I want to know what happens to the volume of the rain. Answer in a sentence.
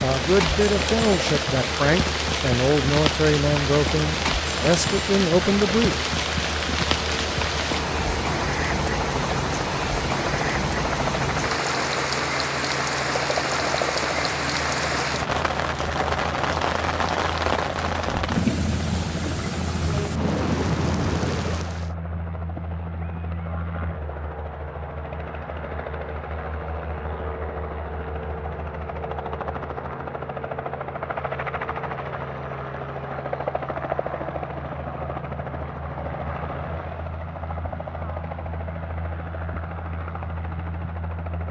The volume of the rain stays about the same.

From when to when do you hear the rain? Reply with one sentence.
You can hear the rain from 0.0 to 21.9 s.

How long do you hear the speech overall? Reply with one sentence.
The speech can be heard for 6 seconds in total.